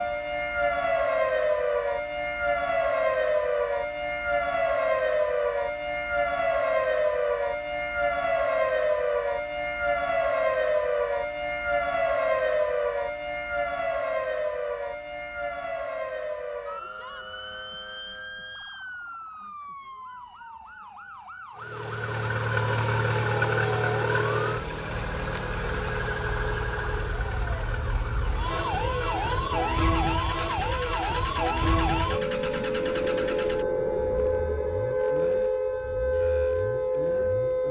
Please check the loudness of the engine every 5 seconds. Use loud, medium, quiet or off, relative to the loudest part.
off, off, off, off, loud, medium, medium, quiet.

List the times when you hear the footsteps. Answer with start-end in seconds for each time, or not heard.
not heard.